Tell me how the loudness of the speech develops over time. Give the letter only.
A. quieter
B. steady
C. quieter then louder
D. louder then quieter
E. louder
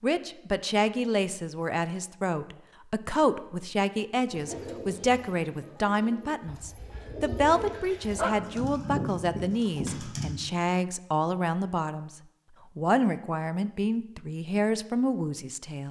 B.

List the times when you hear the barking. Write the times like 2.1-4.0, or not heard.
6.5-8.6.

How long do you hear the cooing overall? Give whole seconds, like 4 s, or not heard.
6 s.